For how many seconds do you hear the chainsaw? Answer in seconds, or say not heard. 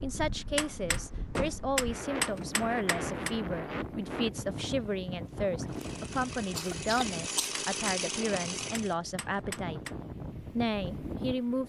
3 s.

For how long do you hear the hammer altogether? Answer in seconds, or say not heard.
5 s.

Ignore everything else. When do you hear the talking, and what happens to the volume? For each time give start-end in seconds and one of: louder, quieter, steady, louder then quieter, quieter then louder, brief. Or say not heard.
0.0-9.8 steady
10.4-11.6 brief.